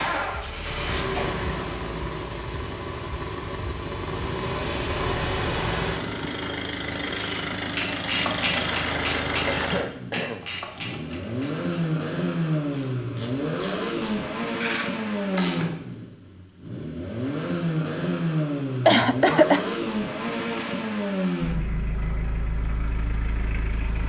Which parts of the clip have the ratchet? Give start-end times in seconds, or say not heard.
6.9-15.8.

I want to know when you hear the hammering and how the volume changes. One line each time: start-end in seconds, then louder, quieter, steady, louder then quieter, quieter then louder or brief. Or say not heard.
not heard.